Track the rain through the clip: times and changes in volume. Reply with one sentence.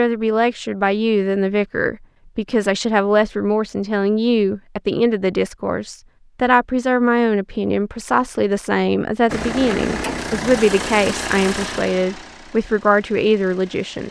You can't hear the rain here.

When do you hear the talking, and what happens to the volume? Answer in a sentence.
The talking can be heard from 0.0 to 14.0 s, at a steady volume.